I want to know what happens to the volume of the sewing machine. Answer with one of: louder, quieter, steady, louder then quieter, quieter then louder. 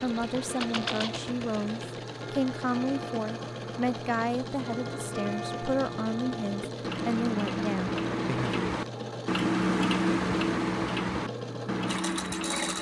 steady.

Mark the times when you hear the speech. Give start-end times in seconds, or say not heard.
0.0-8.7.